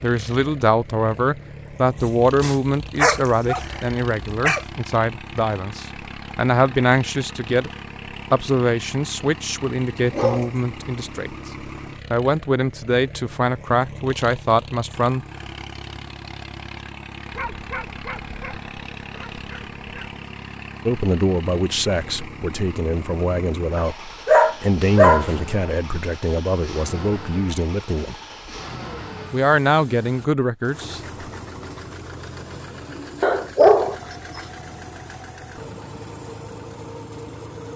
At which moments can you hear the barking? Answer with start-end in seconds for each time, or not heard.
1.9-4.7, 10.1-10.5, 17.3-20.1, 23.8-25.3, 33.2-34.4.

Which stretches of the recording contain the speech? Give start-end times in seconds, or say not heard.
0.0-7.7, 8.3-15.2, 20.9-28.1, 29.3-31.0.